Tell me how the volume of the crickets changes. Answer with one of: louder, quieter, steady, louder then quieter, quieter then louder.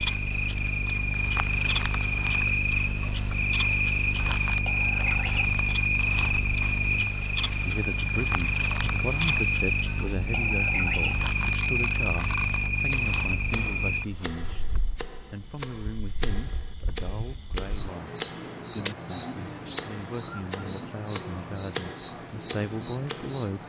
quieter then louder.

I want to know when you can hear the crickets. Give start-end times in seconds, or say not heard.
0.0-23.6.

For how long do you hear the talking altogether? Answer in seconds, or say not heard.
16 s.